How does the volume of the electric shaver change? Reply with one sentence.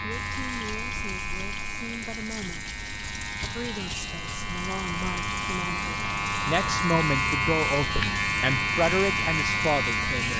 The volume of the electric shaver goes up.